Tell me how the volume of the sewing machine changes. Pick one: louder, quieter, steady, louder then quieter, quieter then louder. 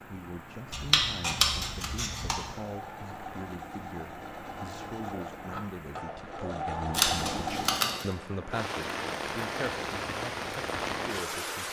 louder.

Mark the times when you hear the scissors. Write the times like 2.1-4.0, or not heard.
0.7-2.5, 6.9-8.1.